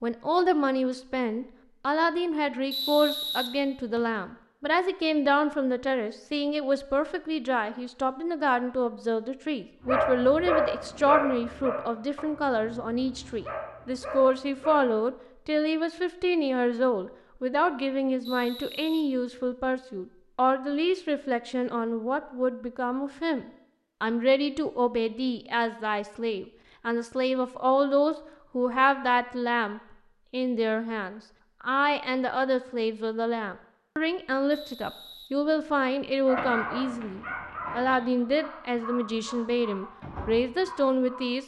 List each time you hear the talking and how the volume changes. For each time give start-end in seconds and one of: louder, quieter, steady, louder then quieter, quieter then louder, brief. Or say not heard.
0.0-41.4 steady.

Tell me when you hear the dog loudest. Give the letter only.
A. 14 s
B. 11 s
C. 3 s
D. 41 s
B.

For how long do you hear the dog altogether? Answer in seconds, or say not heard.
10 s.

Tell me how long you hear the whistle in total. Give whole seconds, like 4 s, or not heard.
4 s.